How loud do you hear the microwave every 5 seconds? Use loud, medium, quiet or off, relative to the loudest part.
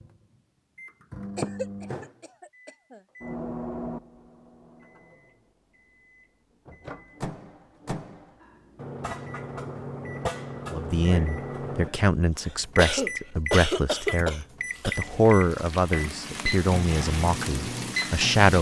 medium, medium, loud, loud.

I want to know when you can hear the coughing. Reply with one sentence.
The coughing can be heard from 1.4 to 3.0 s and from 12.4 to 14.9 s.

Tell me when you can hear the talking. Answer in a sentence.
You can hear the talking from 10.7 to 18.5 s.